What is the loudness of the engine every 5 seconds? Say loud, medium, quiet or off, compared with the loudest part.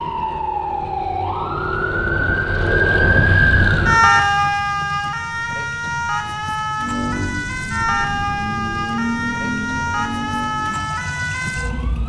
off, loud, medium.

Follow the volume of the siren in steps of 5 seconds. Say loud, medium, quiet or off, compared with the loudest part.
loud, medium, medium.